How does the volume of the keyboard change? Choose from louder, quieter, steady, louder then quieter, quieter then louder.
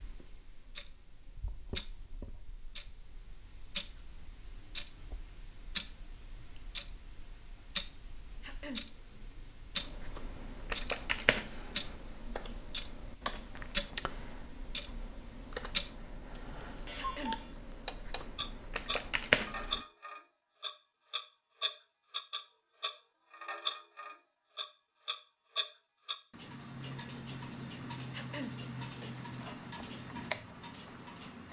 quieter then louder.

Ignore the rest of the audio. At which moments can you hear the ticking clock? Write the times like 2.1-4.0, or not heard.
0.0-31.4.